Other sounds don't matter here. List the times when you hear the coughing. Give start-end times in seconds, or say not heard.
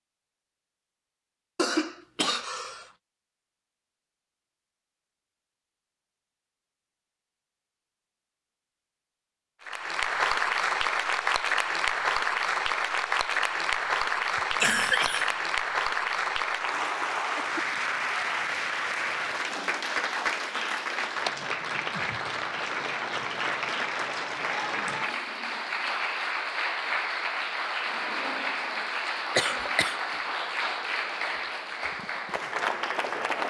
1.6-2.9, 14.3-15.3, 29.4-29.9.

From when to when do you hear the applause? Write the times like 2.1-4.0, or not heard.
9.6-33.4.